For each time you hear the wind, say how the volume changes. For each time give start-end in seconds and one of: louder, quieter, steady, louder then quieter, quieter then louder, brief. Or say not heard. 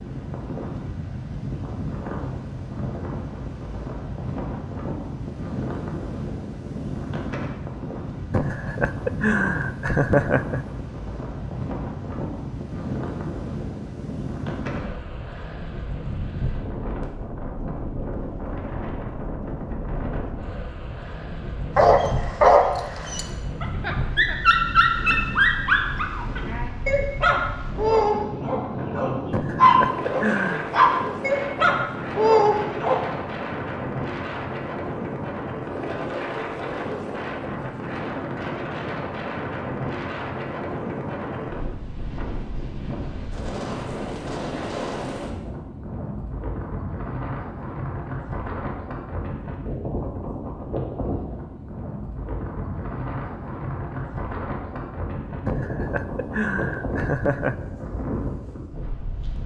0.0-59.4 steady.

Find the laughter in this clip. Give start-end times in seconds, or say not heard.
8.3-10.7, 29.3-30.7, 55.5-57.5.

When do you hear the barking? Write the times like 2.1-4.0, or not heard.
21.8-33.0.